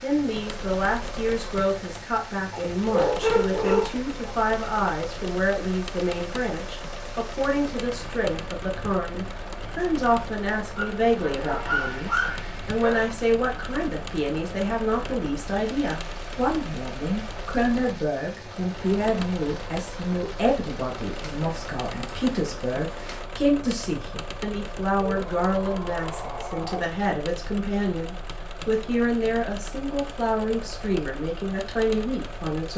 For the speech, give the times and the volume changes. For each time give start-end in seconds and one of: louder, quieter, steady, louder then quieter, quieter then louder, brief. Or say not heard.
0.0-32.7 steady.